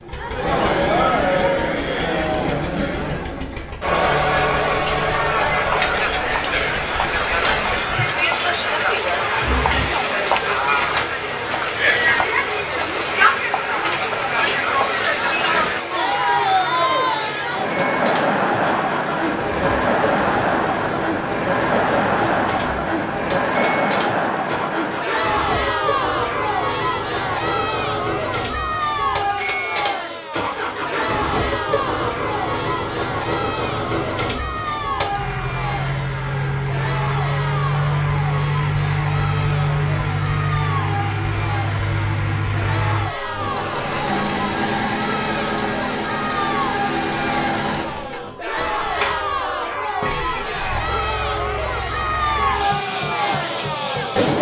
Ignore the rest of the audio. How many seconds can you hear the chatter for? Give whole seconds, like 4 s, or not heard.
54 s.